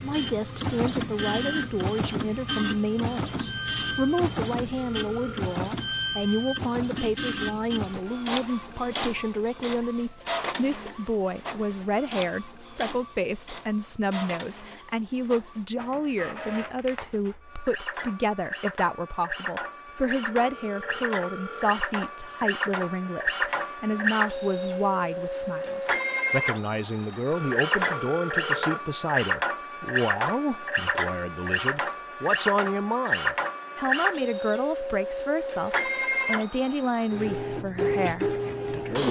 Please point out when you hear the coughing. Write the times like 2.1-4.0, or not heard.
not heard.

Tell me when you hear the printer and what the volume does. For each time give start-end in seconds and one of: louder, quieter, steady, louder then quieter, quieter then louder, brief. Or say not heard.
0.0-39.0 quieter then louder.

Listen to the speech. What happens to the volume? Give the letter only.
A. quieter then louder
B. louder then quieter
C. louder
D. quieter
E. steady
E.